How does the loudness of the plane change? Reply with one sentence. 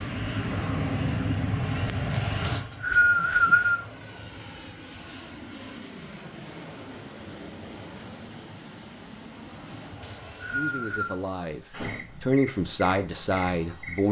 The volume of the plane goes down.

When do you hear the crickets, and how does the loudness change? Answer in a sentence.
The crickets can be heard from 2.6 to 14.0 s, getting louder.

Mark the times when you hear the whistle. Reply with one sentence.
You can hear the whistle from 2.4 to 3.8 s and from 10.0 to 11.2 s.